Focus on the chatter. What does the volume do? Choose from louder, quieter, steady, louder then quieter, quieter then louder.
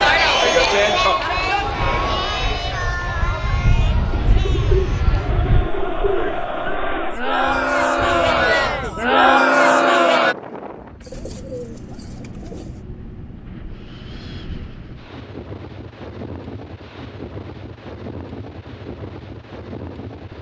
quieter then louder.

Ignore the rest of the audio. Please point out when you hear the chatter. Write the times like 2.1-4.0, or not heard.
0.0-10.3.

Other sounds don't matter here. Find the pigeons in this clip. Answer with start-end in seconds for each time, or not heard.
4.1-6.8, 11.0-12.7.